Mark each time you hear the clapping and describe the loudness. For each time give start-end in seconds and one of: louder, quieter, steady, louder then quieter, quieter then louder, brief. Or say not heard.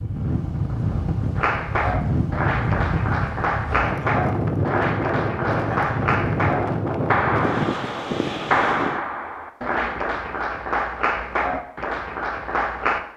1.4-13.0 steady.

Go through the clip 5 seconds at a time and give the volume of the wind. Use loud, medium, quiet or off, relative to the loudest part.
loud, loud, off.